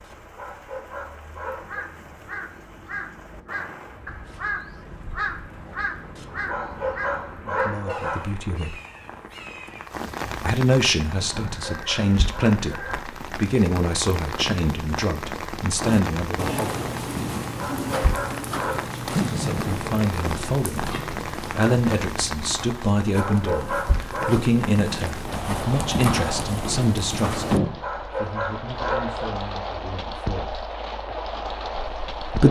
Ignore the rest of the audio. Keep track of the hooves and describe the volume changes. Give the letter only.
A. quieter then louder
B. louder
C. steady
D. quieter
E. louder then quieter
A.